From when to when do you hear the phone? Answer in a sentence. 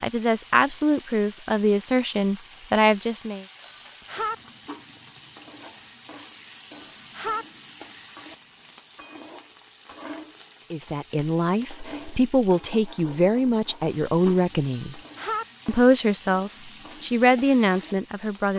You can hear the phone from 3.6 to 4.3 s, from 6.7 to 7.5 s and from 14.7 to 15.4 s.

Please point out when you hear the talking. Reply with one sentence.
The talking can be heard from 0.0 to 3.5 s, from 10.7 to 15.0 s and from 15.7 to 18.5 s.